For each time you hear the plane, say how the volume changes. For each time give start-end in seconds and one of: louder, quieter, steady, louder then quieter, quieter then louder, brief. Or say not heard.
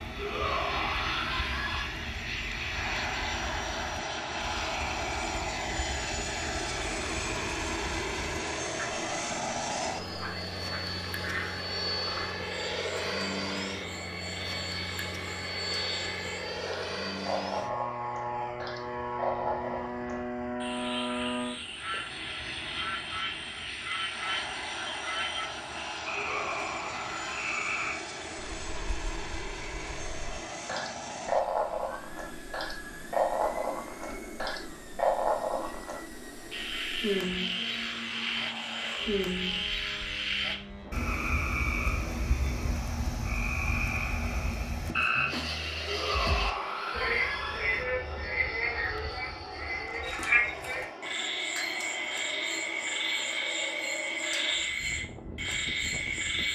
0.0-56.5 quieter.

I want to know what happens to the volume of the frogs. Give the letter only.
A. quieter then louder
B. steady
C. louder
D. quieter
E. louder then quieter
C.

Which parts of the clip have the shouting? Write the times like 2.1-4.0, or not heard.
0.1-1.9, 26.1-27.4, 45.9-47.9.